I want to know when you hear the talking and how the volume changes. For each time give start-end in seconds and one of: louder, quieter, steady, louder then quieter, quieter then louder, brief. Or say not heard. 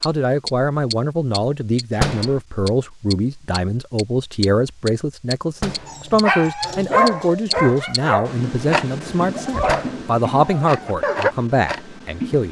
0.0-12.4 steady.